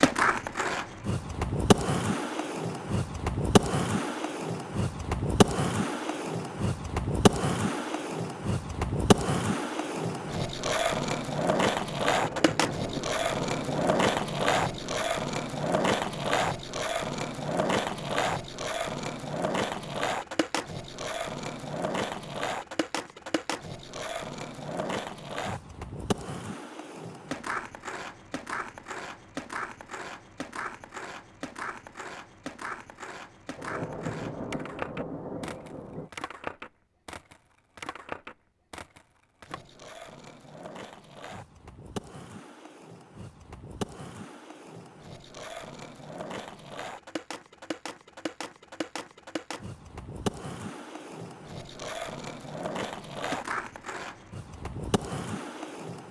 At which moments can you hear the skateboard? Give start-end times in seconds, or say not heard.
0.0-56.0.